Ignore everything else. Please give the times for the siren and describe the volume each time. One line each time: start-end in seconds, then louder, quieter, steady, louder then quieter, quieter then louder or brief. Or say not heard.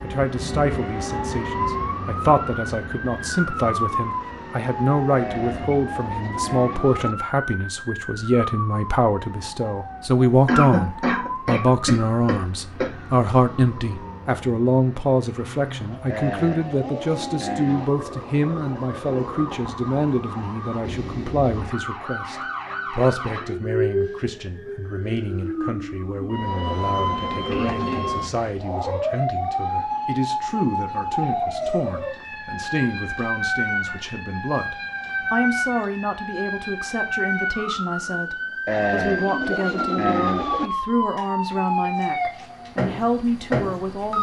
0.0-44.1 quieter then louder.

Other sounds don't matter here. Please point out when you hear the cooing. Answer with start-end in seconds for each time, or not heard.
5.1-7.2, 16.1-17.9, 38.6-40.7.